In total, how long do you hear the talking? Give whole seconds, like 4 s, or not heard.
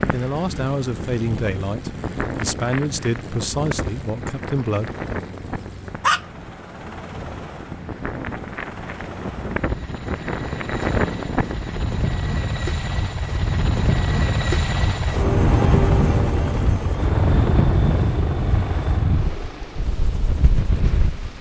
5 s.